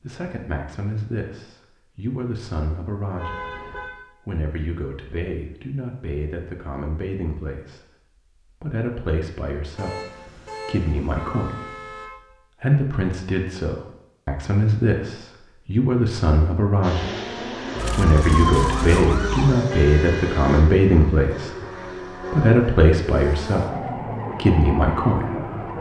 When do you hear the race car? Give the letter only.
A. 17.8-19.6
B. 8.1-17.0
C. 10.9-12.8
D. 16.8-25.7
D.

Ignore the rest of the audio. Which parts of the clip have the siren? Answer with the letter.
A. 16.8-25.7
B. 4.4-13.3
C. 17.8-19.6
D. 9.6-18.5
C.